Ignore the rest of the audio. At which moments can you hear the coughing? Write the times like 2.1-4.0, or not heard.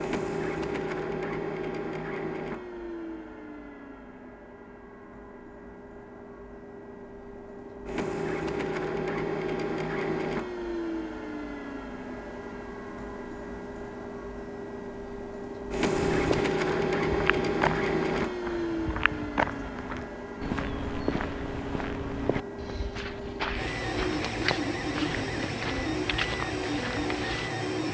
not heard.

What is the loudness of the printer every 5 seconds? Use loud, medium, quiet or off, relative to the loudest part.
medium, medium, medium, loud, medium, loud.